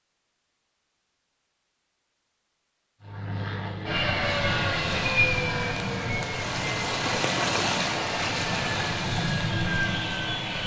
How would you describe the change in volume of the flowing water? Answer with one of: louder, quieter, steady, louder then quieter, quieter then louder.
louder then quieter.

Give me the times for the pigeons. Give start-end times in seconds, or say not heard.
not heard.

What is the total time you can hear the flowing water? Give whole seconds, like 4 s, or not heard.
6 s.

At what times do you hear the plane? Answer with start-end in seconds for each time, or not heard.
3.0-10.6.